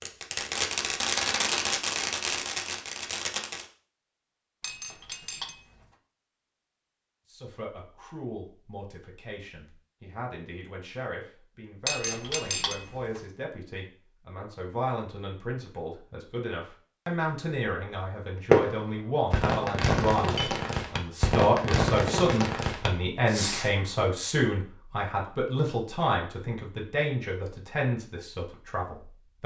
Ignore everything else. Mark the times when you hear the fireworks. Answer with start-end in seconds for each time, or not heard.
0.0-3.6, 18.5-23.7.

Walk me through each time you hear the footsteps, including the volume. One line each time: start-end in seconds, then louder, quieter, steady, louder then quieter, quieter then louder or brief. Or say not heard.
not heard.